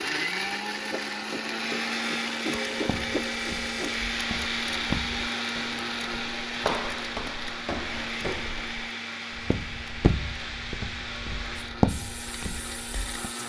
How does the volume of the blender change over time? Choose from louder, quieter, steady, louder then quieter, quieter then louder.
quieter.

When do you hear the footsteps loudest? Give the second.
12 s.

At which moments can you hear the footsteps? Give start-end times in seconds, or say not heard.
2.9-13.3.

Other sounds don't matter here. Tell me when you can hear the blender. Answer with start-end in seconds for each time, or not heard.
0.0-13.4.